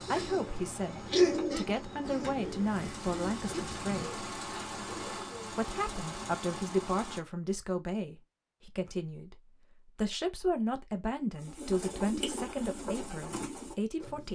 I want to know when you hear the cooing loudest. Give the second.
1 s.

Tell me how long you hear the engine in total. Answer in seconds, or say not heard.
7 s.